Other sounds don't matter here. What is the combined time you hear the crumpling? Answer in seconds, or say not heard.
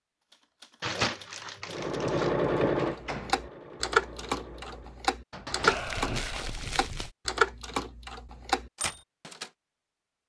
3 s.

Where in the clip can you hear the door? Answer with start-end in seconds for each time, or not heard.
2.8-3.5, 5.3-6.2.